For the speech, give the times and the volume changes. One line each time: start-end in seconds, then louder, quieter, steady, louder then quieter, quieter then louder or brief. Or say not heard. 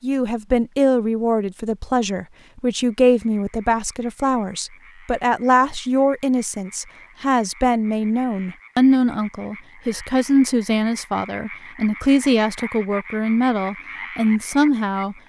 0.0-15.2 steady.